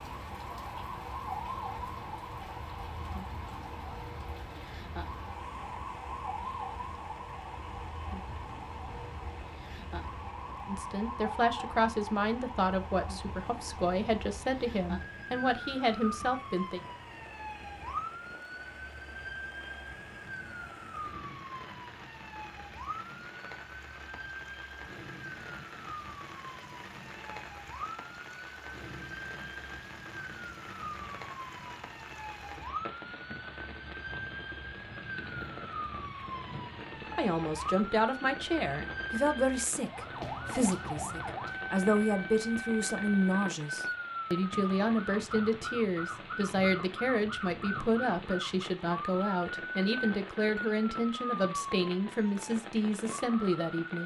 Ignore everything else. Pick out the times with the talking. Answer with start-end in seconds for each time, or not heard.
10.7-16.8, 37.1-54.0.